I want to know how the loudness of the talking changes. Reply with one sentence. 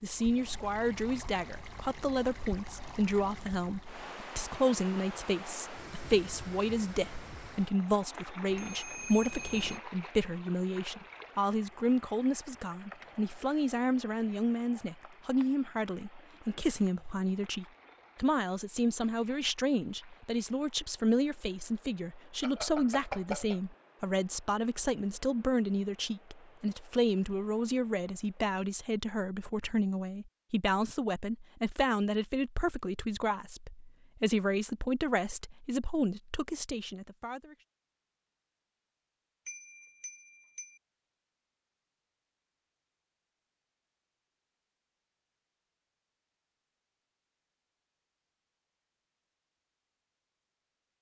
The loudness of the talking stays about the same.